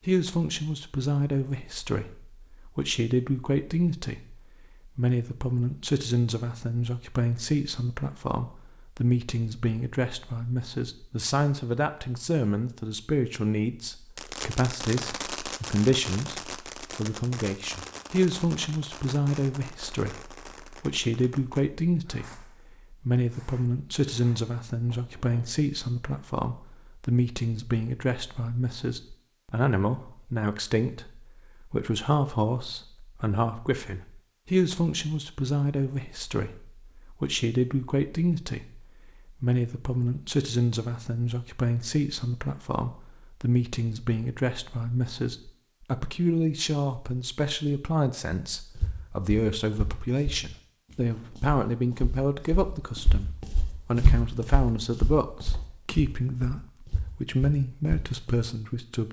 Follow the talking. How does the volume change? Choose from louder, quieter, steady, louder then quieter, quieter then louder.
steady.